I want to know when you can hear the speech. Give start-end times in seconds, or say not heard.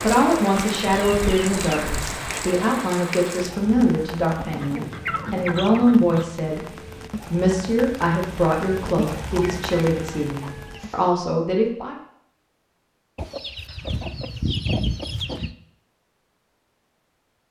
0.0-11.9.